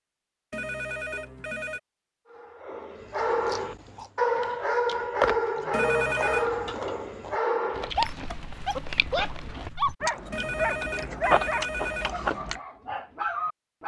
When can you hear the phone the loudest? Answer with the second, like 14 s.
6 s.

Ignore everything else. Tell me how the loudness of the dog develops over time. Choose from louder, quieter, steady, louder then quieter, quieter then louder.
quieter.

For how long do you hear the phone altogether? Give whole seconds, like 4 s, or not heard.
4 s.